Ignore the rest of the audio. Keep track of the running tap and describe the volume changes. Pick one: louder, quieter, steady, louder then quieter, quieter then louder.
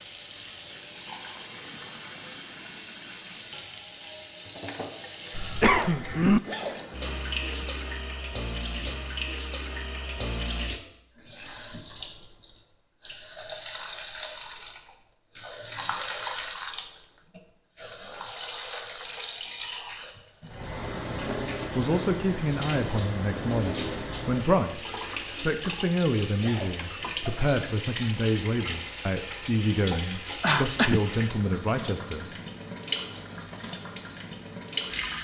steady.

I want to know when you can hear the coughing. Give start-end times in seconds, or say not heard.
5.3-6.4, 30.4-31.0.